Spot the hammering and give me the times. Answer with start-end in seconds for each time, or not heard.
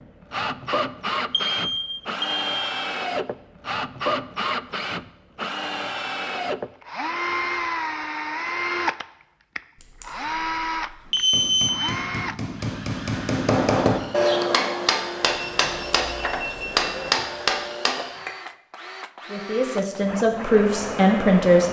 11.2-18.4.